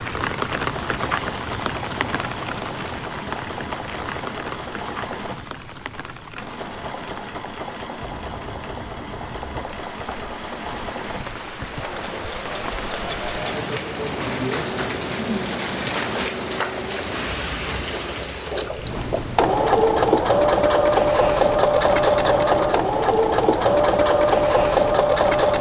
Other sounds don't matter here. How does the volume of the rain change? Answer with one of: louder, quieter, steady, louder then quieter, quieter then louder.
quieter then louder.